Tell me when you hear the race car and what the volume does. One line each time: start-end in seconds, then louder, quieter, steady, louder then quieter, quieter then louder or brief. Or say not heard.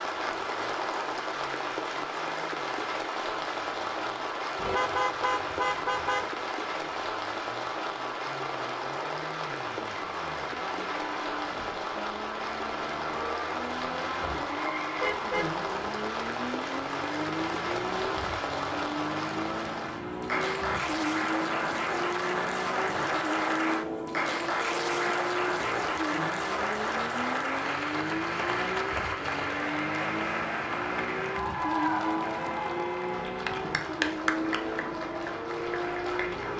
0.0-36.5 louder.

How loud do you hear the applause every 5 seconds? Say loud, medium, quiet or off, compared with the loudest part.
loud, loud, loud, loud, loud, loud, loud, medium.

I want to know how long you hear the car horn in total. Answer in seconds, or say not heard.
3 s.